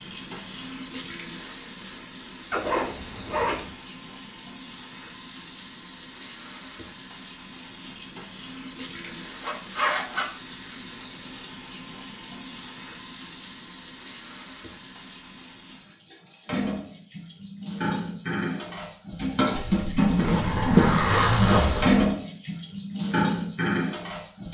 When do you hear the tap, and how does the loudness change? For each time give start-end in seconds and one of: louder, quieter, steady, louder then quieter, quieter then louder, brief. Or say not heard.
0.0-24.4 louder.